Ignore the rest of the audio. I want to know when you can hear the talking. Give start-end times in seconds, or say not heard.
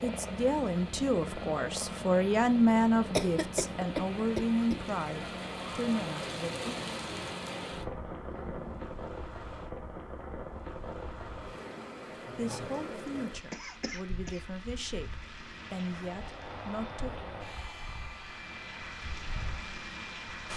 0.0-6.8, 12.3-17.1.